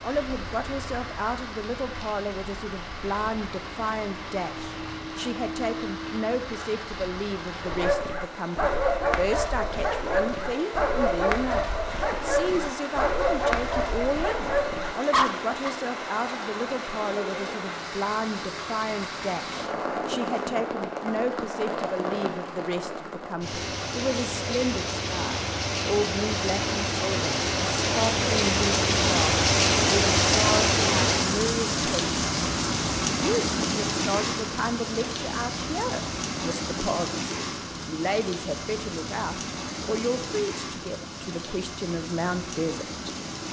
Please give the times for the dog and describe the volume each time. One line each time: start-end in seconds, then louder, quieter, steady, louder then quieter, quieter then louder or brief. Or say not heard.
7.6-15.7 steady.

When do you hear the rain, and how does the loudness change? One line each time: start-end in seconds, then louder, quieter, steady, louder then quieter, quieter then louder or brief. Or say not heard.
0.0-43.4 louder then quieter.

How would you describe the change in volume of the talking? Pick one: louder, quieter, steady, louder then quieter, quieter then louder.
steady.